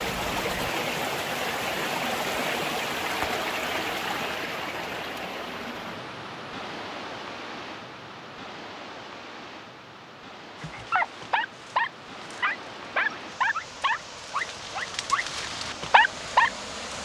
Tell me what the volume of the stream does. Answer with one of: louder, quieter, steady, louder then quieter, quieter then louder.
quieter.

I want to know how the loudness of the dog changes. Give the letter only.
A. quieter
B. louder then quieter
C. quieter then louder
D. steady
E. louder
C.